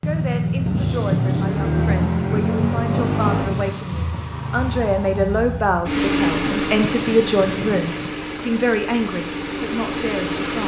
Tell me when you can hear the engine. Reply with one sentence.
The engine can be heard from 0.0 to 10.6 s.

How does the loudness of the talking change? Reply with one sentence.
The volume of the talking goes up.